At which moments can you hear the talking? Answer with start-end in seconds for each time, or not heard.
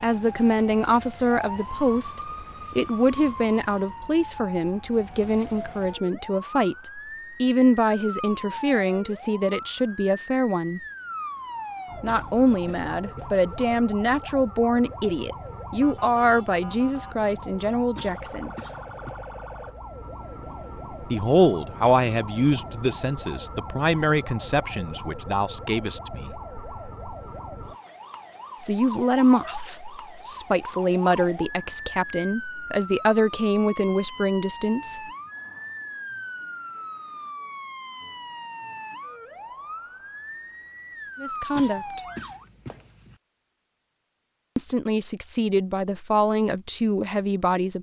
0.0-10.8, 12.0-18.5, 21.1-26.4, 28.6-35.0, 41.2-42.0, 44.5-47.7.